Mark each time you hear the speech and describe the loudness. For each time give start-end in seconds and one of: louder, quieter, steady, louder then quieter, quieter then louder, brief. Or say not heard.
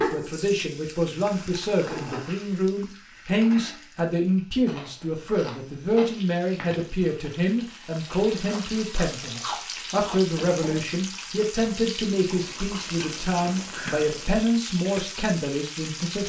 0.0-16.2 steady.